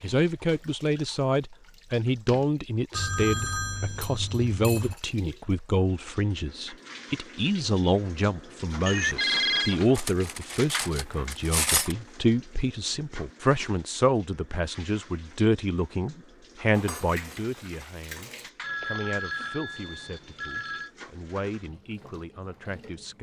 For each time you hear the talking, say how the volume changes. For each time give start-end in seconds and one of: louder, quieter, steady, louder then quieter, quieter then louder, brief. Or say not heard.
0.0-23.1 quieter.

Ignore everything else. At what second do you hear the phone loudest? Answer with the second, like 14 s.
9 s.